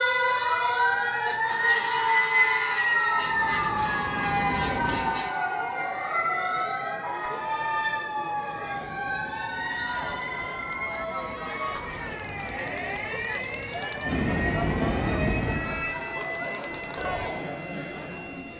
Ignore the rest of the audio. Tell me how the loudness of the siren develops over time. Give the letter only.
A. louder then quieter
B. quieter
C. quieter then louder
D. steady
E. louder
B.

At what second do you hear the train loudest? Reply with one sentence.
The volume of the train peaks at 15 seconds.